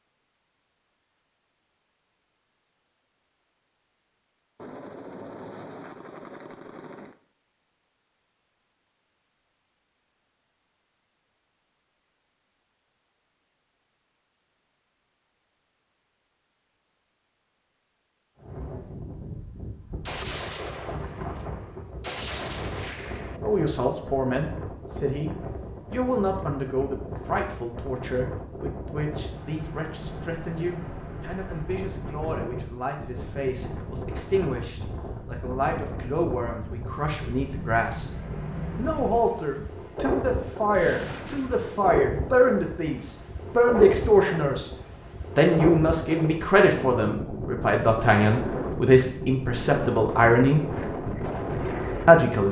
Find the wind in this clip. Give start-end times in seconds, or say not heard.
18.4-52.4.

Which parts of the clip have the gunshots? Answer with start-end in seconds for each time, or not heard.
4.5-7.2, 20.1-23.4, 40.7-41.8.